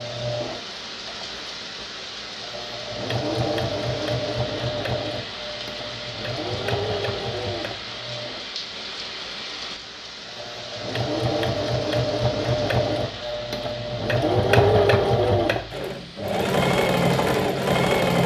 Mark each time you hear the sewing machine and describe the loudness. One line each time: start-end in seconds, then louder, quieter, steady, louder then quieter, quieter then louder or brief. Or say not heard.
0.0-18.2 quieter then louder.